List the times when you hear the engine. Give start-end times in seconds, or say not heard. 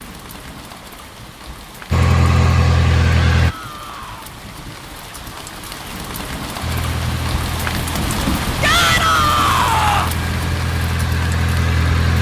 1.9-3.5, 6.6-12.1.